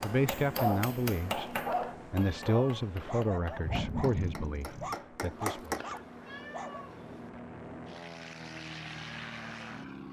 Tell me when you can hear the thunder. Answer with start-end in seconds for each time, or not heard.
3.6-5.0.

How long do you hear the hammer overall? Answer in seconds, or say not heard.
6 s.